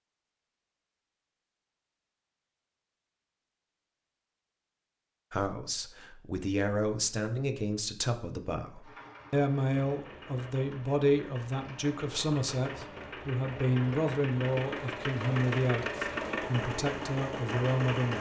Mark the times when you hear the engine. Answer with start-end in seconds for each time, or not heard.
8.8-18.1.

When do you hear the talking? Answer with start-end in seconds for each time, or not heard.
5.3-18.1.